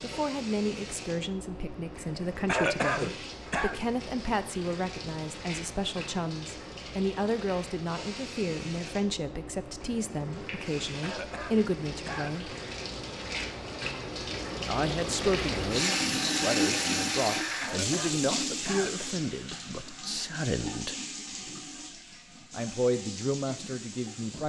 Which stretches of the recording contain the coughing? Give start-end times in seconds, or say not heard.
2.5-3.8, 11.0-12.4, 17.6-19.1.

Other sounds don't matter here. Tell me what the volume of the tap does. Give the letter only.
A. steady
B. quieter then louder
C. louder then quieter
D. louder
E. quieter
C.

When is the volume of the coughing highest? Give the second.
3 s.